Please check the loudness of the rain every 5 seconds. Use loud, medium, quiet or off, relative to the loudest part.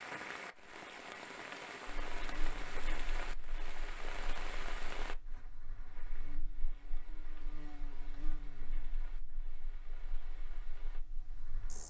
loud, quiet, quiet.